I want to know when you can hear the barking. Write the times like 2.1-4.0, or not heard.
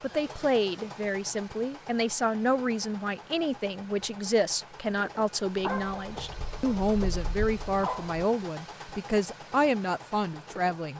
5.6-8.2.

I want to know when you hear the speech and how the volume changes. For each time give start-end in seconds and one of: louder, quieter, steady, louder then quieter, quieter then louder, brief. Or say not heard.
0.0-10.9 steady.